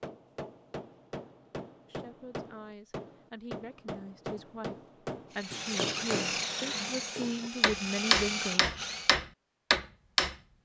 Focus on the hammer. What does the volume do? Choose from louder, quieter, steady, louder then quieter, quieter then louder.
louder.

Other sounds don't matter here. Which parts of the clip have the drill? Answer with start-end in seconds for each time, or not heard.
5.3-9.2.